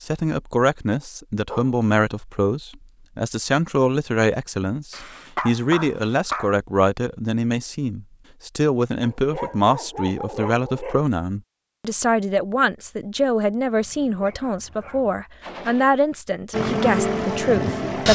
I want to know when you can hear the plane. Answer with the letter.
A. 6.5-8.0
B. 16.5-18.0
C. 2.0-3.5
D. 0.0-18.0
B.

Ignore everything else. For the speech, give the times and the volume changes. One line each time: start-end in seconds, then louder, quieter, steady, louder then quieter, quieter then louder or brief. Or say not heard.
0.0-18.0 steady.